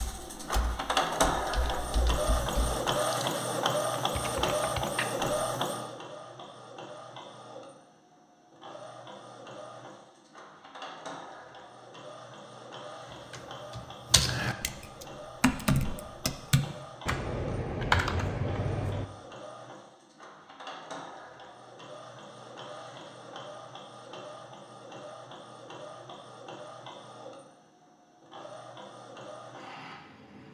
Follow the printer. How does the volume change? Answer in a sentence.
The volume of the printer goes down.